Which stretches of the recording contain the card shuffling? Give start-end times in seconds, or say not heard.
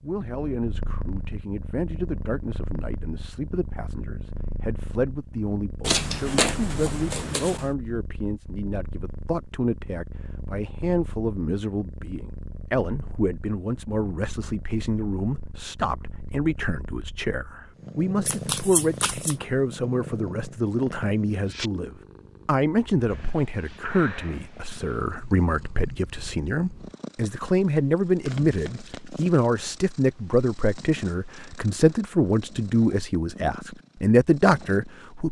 5.8-7.7, 18.2-19.4, 28.2-29.4.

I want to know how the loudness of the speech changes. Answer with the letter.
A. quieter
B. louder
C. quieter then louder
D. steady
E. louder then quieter
B.